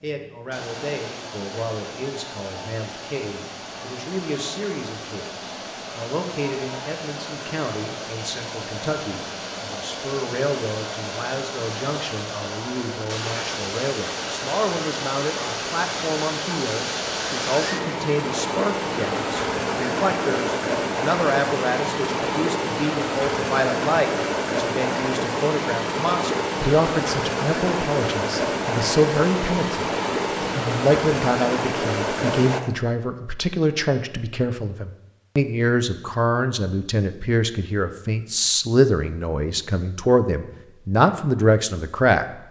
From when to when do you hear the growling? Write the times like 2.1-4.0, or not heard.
not heard.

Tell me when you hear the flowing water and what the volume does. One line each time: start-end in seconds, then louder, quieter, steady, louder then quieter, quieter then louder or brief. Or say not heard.
0.1-32.6 louder.